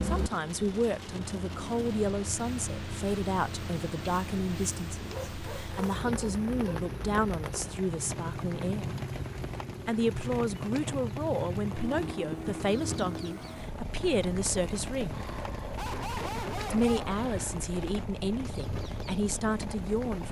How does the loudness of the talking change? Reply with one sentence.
The loudness of the talking stays about the same.